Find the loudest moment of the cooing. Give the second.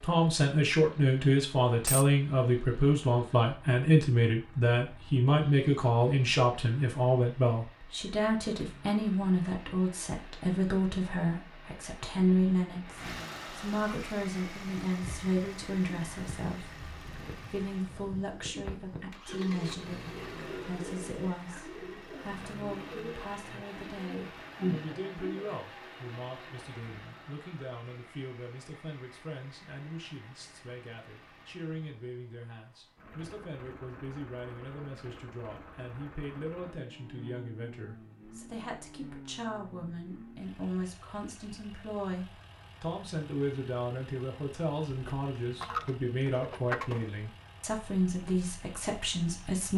25 s.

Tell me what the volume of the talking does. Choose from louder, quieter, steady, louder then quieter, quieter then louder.
quieter then louder.